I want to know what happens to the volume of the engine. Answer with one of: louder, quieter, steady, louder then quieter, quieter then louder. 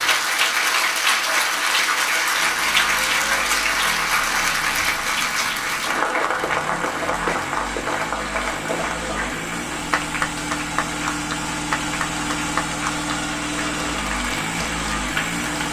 louder.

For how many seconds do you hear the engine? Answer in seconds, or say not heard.
13 s.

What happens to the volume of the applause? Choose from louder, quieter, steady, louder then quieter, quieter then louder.
quieter.